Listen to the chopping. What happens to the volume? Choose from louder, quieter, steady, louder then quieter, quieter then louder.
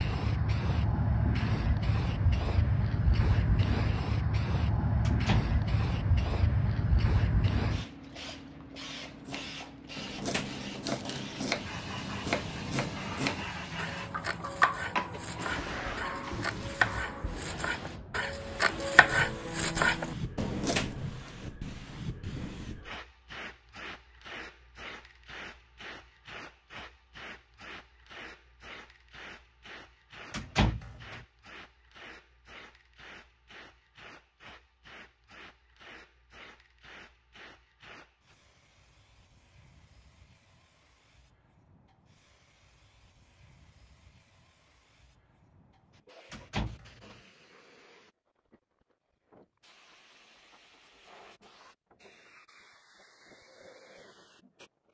louder.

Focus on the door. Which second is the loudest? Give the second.
31 s.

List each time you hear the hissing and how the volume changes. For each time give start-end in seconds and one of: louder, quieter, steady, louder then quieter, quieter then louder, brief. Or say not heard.
0.0-54.8 quieter.